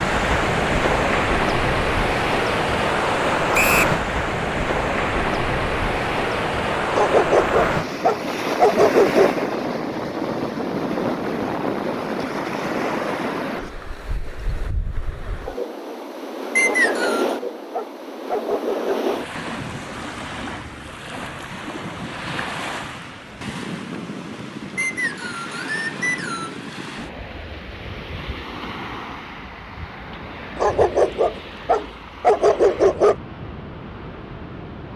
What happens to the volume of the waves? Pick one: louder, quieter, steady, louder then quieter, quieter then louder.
quieter.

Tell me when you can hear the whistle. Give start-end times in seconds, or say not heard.
3.5-4.0, 16.6-17.4, 24.8-26.6.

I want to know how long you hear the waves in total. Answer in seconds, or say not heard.
35 s.